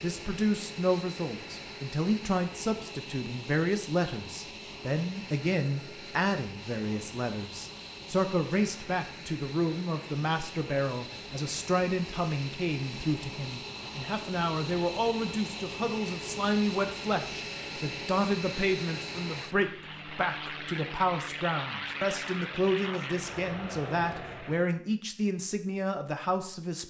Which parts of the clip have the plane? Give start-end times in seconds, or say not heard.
0.0-24.8.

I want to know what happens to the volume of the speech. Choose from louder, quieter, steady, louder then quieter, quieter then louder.
steady.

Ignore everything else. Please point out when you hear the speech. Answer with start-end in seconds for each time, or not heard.
0.0-26.8.